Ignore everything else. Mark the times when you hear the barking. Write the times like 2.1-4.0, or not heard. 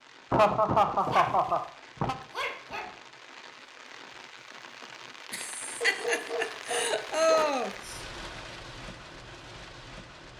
1.0-3.0, 5.8-7.5.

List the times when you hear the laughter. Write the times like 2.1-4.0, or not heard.
0.3-2.1, 5.3-8.0.